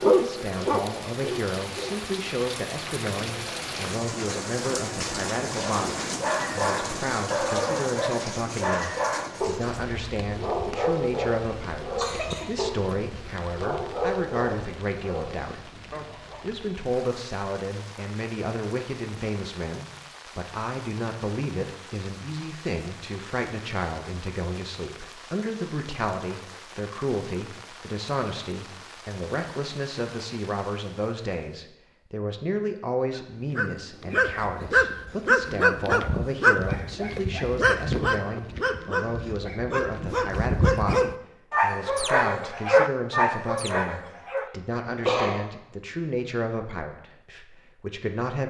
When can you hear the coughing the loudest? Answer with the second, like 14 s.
45 s.